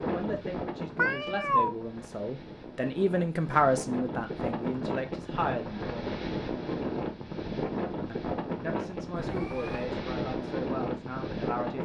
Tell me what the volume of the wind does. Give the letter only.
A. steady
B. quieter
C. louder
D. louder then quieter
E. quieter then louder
C.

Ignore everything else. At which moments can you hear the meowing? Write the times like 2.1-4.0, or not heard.
0.9-1.8, 9.2-9.9.